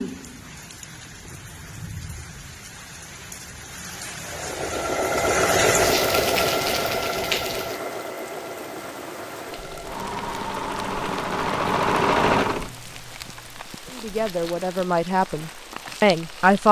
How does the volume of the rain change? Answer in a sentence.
The loudness of the rain goes up, then down.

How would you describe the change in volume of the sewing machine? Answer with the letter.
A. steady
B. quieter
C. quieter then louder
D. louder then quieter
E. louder
C.